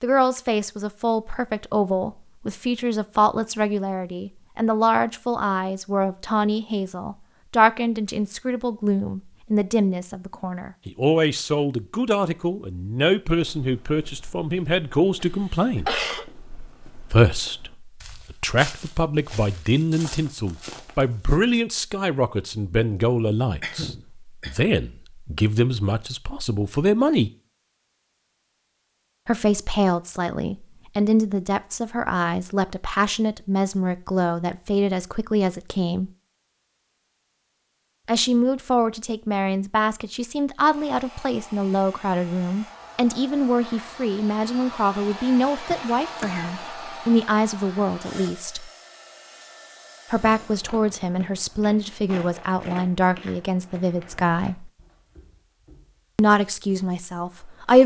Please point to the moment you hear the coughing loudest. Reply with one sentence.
The volume of the coughing peaks at 16 seconds.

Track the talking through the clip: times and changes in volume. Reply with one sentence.
You can hear the talking from 0.0 to 15.9 s, at a steady volume; from 17.1 to 27.3 s, at a steady volume; from 29.2 to 36.1 s, at a steady volume; from 38.0 to 48.7 s, at a steady volume; from 50.1 to 54.7 s, at a steady volume; and briefly from 56.1 to 57.8 s.